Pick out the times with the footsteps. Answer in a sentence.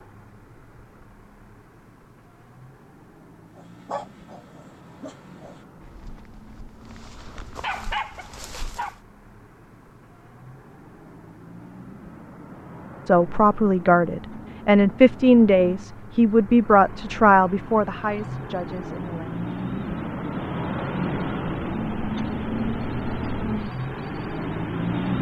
You can't hear the footsteps here.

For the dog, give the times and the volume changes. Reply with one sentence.
You can hear the dog from 3.5 to 8.9 s, getting quieter then louder.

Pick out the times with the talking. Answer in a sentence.
The talking can be heard from 13.1 to 19.4 s.